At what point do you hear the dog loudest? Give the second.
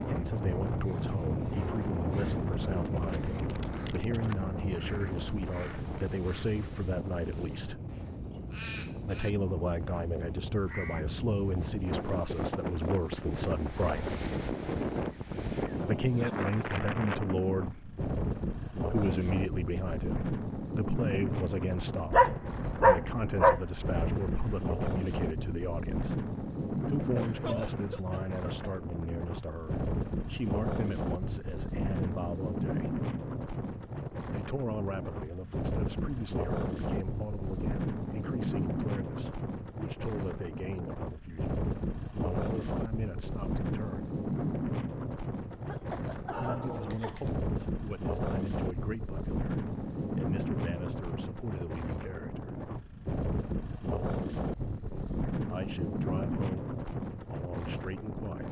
23 s.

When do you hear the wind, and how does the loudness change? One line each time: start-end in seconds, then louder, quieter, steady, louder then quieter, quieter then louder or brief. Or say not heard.
0.0-58.4 steady.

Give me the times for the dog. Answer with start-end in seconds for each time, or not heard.
22.1-24.6, 45.5-47.4.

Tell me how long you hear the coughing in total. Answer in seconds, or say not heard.
4 s.